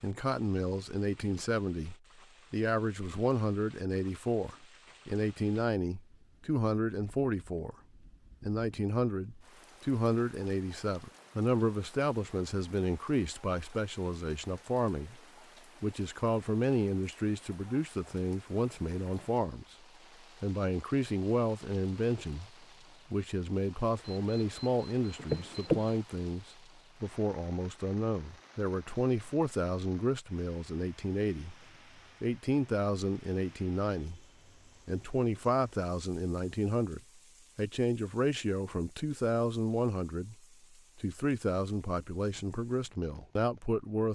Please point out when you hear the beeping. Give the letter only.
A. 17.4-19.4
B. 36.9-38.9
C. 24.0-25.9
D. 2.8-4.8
C.